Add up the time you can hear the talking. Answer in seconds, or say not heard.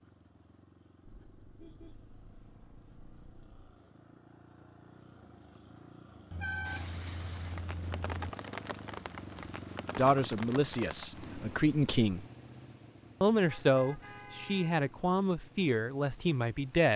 6 s.